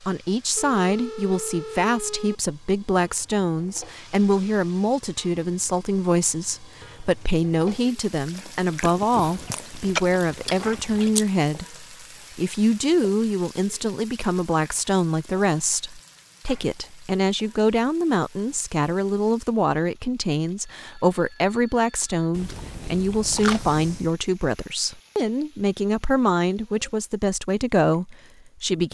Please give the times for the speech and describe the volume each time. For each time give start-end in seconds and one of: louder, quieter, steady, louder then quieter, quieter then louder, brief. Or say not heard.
0.0-28.8 steady.